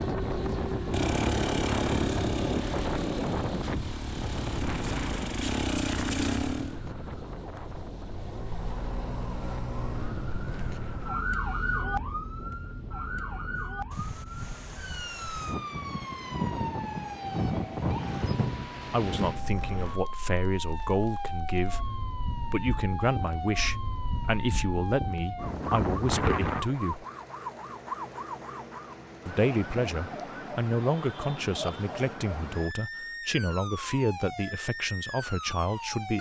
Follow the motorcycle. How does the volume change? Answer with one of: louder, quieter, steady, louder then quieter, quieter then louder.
quieter then louder.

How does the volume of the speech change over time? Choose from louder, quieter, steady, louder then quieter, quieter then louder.
steady.